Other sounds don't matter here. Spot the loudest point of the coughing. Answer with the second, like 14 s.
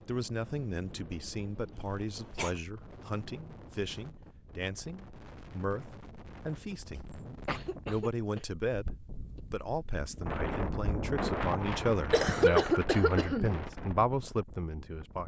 13 s.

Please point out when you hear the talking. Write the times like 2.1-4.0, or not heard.
0.1-7.0, 7.8-15.2.